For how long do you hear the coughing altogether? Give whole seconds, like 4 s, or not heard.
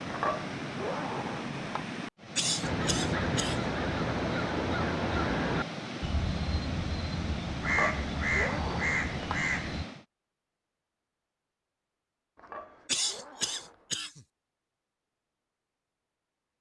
3 s.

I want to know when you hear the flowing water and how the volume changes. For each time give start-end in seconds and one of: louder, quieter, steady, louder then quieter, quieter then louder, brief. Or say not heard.
0.0-10.1 steady.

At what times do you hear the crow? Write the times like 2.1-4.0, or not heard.
2.6-9.8.